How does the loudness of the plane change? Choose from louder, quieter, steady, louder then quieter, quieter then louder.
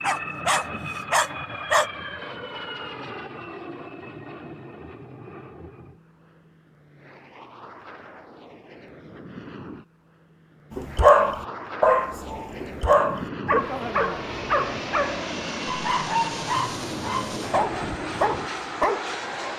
quieter then louder.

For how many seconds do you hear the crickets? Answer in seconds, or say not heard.
not heard.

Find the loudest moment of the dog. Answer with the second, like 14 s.
11 s.